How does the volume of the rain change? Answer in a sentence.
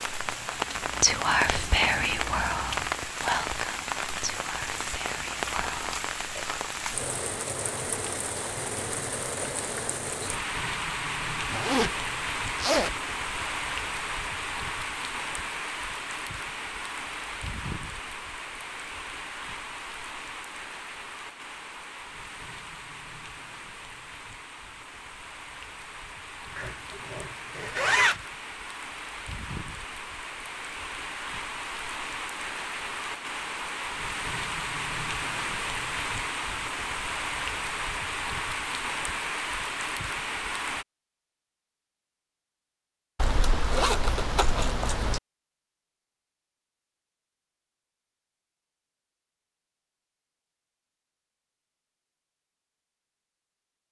The volume of the rain goes down, then up.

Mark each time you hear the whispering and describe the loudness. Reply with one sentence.
The whispering can be heard from 0.5 to 6.0 s, getting quieter.